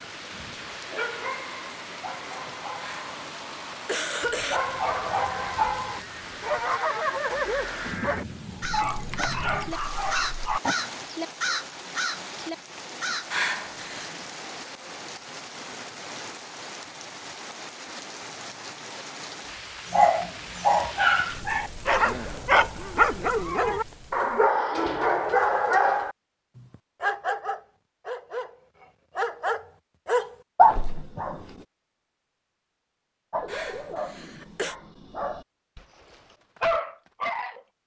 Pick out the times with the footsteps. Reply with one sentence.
The footsteps can't be heard in this clip.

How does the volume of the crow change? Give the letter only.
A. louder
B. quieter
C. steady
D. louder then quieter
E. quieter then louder
A.